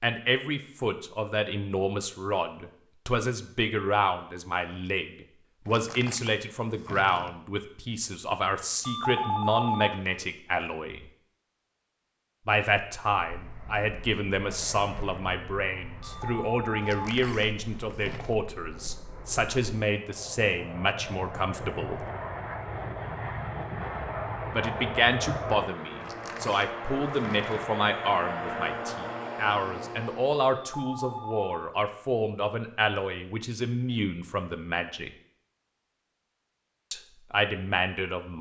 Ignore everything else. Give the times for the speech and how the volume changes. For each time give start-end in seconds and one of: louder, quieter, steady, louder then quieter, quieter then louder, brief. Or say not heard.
0.0-11.1 steady
12.4-22.1 steady
24.5-35.1 steady
36.9-38.3 brief.